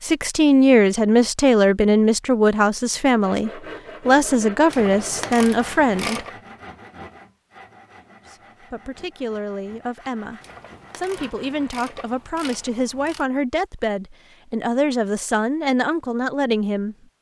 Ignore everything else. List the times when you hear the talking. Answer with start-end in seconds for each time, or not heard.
0.0-6.2, 8.3-16.9.